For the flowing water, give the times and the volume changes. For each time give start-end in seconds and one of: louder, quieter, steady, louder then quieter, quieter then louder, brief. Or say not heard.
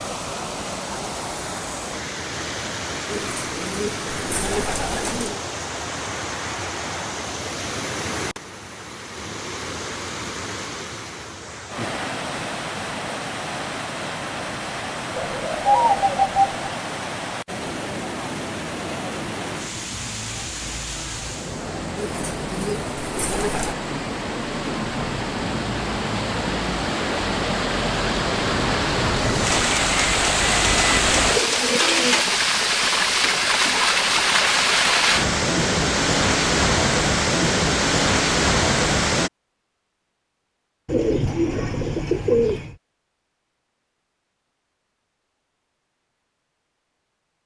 0.0-39.3 louder.